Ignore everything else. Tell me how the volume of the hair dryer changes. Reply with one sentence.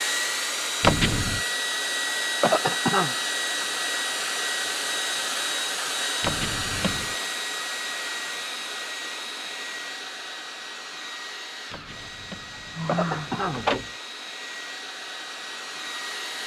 The volume of the hair dryer goes down.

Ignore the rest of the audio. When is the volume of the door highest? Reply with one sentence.
The loudest moment of the door is at 1 second.